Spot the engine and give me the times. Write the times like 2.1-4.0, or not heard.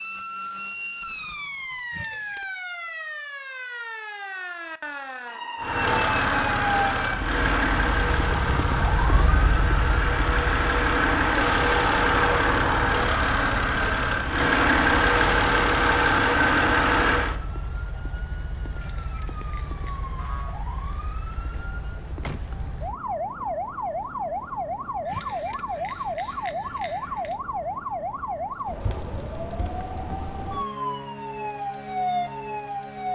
5.6-17.4.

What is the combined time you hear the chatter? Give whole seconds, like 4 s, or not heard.
not heard.